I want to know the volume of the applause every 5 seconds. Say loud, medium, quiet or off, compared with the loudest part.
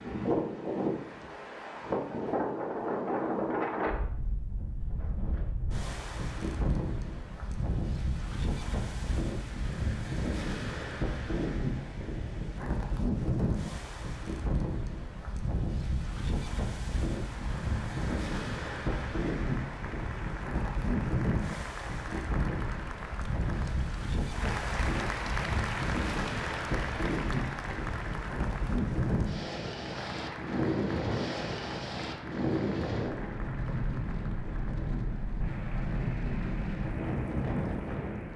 off, off, off, medium, loud, loud, medium, medium.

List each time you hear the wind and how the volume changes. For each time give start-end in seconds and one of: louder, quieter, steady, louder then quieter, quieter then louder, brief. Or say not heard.
0.0-38.3 steady.